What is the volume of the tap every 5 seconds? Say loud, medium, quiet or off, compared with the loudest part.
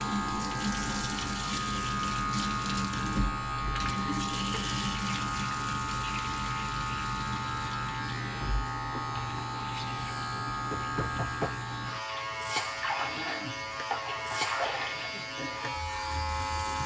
loud, medium, loud, medium.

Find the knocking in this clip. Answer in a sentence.
The knocking can be heard from 10.7 to 11.6 s.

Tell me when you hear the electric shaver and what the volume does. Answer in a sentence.
The electric shaver can be heard from 0.0 to 16.8 s, at a steady volume.